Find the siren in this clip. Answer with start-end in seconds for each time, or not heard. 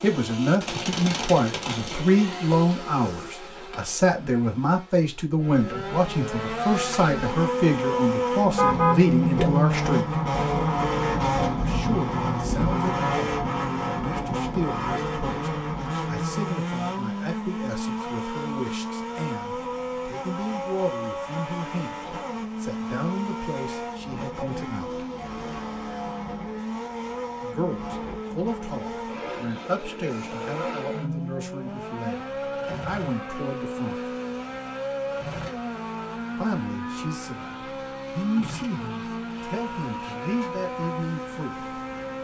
not heard.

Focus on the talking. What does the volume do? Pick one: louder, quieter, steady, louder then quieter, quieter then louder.
quieter.